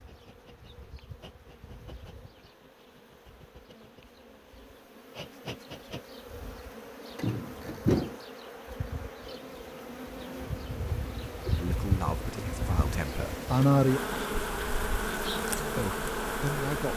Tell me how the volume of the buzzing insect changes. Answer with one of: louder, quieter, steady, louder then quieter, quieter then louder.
louder.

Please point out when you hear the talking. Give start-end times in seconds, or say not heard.
11.6-13.4, 15.8-16.9.